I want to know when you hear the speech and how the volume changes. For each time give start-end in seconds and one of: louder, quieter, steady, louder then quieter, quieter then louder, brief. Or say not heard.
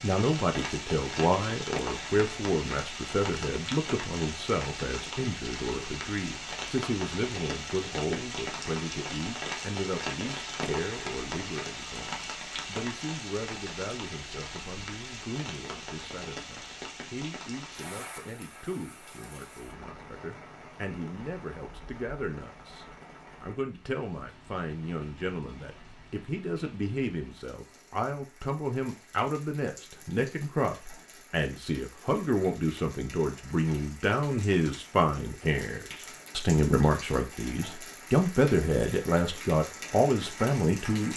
0.0-41.1 quieter then louder.